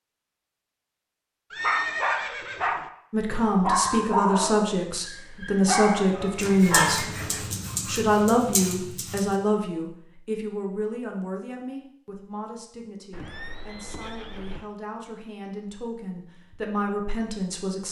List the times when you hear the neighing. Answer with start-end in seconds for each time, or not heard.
1.5-2.9, 6.2-7.5, 13.1-14.7.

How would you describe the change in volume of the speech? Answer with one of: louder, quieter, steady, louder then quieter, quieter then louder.
quieter then louder.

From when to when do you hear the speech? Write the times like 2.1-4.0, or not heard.
3.1-7.0, 7.8-17.8.